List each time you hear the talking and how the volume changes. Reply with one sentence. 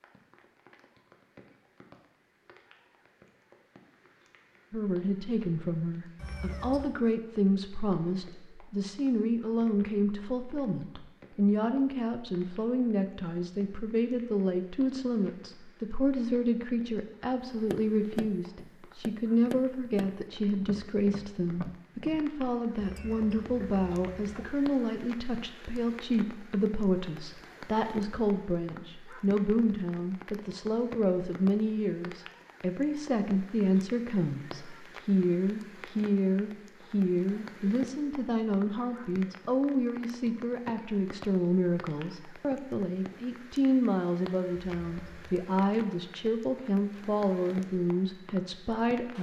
The talking can be heard from 4.7 to 49.1 s, at a steady volume.